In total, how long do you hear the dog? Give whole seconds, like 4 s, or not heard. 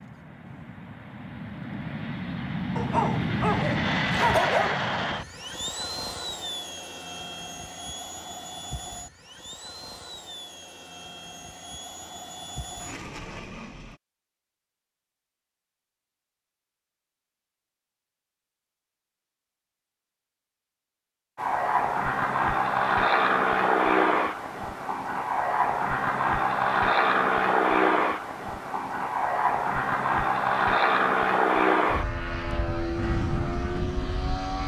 2 s.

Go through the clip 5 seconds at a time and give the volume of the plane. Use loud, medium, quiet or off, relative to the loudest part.
medium, quiet, quiet, off, loud, loud, loud.